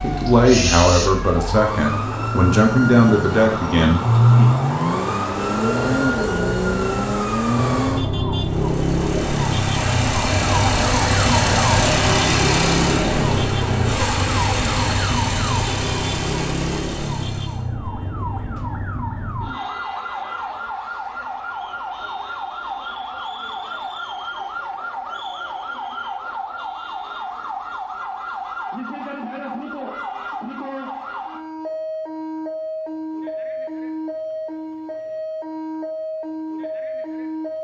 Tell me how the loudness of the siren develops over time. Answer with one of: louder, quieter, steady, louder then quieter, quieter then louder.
quieter.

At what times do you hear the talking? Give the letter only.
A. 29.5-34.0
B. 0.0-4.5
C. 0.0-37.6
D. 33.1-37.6
B.